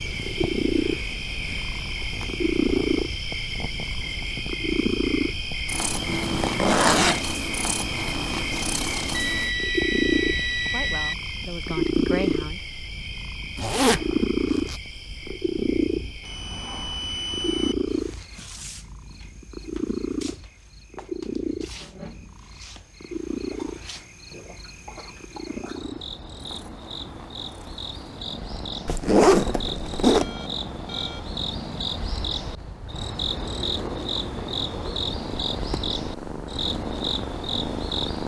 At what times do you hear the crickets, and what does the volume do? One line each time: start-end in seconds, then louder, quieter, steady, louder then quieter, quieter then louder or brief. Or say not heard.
0.0-38.2 quieter then louder.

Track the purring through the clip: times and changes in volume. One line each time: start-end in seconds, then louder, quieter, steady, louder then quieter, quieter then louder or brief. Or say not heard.
0.0-38.2 quieter.